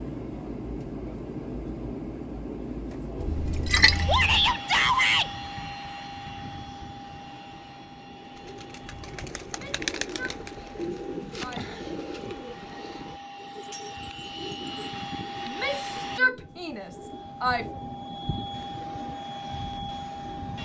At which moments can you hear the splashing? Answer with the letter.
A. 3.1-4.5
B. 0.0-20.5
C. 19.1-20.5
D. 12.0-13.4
A.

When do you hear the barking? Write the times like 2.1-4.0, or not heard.
not heard.